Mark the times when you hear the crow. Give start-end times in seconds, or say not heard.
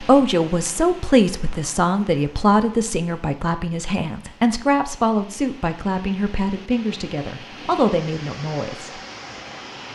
not heard.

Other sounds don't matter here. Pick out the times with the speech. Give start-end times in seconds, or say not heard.
0.0-9.0.